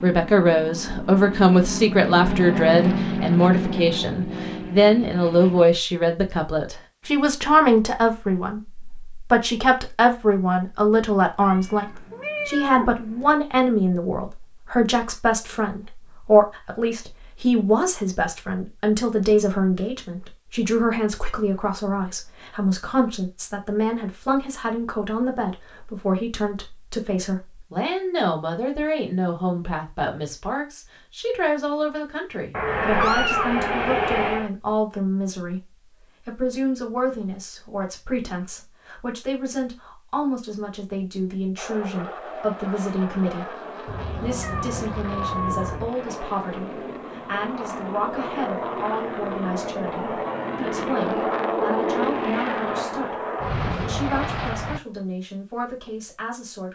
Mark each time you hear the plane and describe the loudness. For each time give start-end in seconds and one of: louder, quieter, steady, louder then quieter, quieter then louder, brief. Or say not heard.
0.0-5.7 louder then quieter
41.5-54.8 louder.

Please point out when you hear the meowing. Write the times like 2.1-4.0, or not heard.
11.4-13.3, 32.5-34.5, 43.9-45.9.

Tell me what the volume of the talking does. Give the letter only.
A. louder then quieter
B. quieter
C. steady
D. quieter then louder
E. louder
B.